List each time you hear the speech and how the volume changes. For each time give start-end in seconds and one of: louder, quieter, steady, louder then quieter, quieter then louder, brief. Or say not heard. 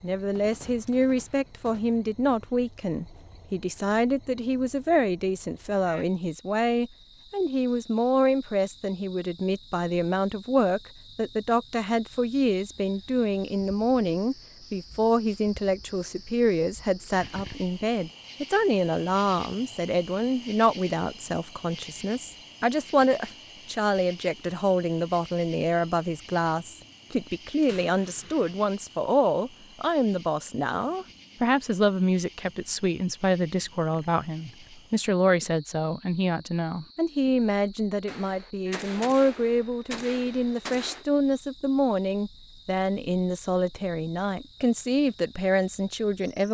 0.0-46.4 steady.